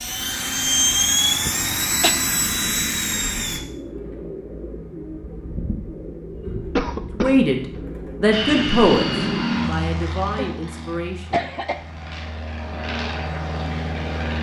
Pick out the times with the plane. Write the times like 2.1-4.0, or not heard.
0.0-3.6, 8.3-14.3.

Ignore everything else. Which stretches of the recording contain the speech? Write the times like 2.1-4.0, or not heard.
7.2-11.5.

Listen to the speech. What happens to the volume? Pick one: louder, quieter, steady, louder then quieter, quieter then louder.
louder then quieter.